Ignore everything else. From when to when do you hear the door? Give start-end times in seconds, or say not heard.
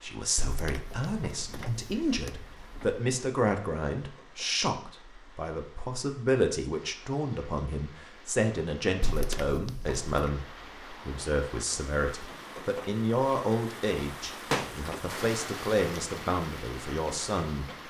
0.3-3.0, 9.0-10.2, 14.5-15.1.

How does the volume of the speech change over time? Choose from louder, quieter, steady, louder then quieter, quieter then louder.
steady.